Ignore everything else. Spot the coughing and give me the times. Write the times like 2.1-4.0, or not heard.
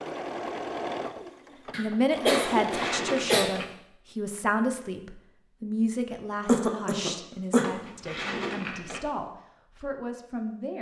1.7-3.5, 6.5-7.7.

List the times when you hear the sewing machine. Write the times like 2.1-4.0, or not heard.
0.0-3.1.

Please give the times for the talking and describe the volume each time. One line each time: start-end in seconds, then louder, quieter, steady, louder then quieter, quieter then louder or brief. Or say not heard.
1.8-10.7 quieter.